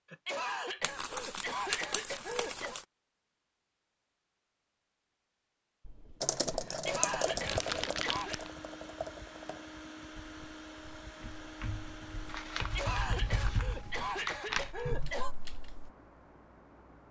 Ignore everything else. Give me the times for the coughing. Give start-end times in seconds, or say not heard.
0.1-2.8, 6.7-8.4, 12.6-15.3.